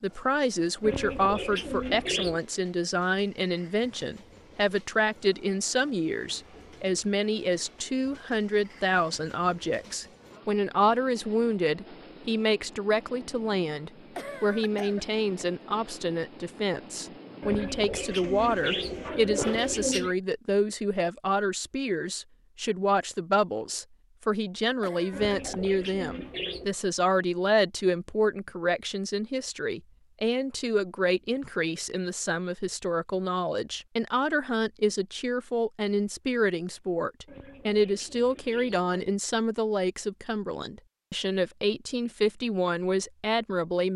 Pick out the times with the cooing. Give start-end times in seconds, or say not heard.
0.8-2.4, 17.4-20.1, 25.1-26.8, 37.2-39.1.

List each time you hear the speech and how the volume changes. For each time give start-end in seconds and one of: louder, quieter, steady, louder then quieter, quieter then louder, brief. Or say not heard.
0.0-43.9 steady.